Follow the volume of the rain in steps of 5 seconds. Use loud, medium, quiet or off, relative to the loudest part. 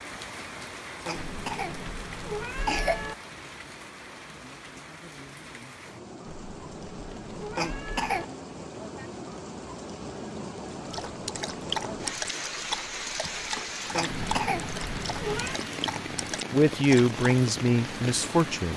medium, medium, loud, loud.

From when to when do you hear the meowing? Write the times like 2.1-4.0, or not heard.
1.1-3.1, 6.2-8.2, 14.1-15.6.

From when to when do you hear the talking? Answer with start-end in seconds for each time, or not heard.
16.5-18.7.